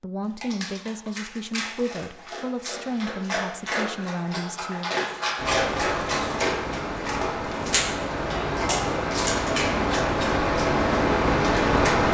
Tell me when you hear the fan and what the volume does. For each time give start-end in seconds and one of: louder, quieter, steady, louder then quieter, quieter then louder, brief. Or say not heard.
5.3-12.0 louder.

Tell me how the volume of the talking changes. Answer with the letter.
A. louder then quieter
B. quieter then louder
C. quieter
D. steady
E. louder
D.